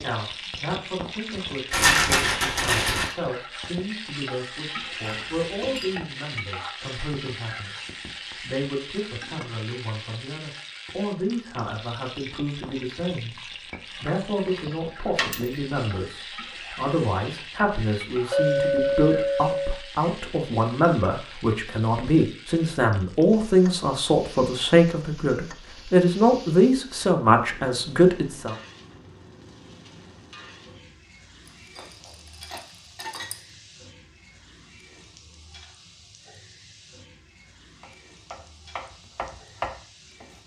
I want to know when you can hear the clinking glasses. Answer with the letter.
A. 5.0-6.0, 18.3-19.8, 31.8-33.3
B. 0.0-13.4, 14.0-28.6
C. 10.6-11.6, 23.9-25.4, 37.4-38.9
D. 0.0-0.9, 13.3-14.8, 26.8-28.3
A.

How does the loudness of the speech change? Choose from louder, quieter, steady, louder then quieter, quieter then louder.
louder.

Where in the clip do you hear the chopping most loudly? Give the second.
40 s.